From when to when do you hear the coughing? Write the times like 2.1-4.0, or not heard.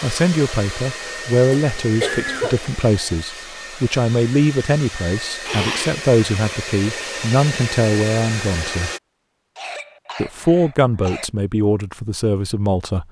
1.6-2.7, 5.5-6.0, 9.6-11.3.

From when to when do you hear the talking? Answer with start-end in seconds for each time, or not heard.
0.0-8.9, 10.2-13.0.